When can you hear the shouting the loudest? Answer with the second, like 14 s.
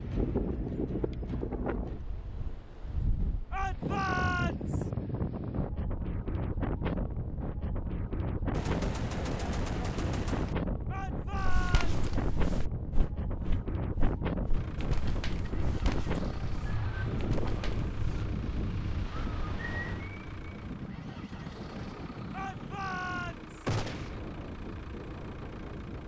4 s.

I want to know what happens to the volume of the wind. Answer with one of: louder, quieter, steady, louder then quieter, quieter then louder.
quieter.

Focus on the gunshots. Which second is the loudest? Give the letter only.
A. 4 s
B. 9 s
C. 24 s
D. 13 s
C.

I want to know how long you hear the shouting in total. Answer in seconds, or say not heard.
4 s.